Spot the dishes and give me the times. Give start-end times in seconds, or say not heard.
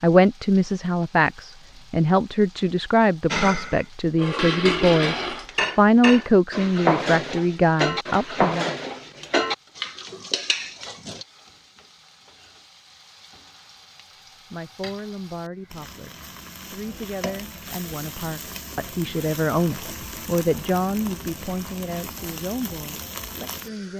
3.3-11.2.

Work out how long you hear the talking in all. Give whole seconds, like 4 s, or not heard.
18 s.